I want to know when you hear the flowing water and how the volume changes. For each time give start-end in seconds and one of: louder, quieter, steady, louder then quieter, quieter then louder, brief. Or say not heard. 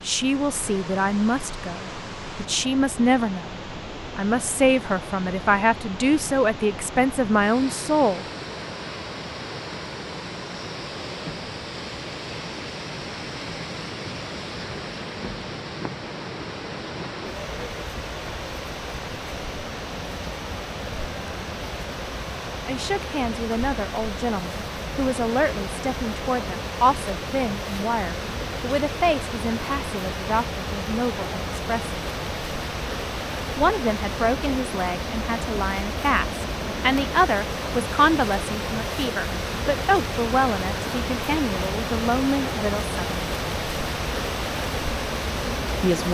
0.0-46.1 louder.